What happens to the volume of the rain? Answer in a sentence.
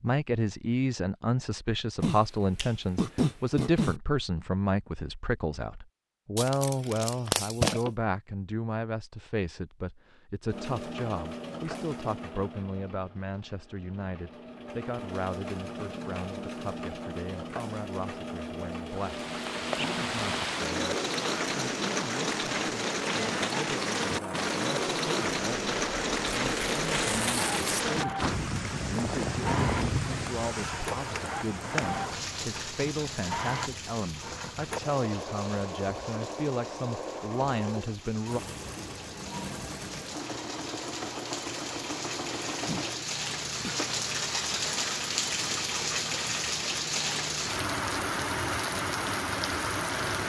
The volume of the rain goes down, then up.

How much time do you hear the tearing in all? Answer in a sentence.
You can hear the tearing for 3 seconds altogether.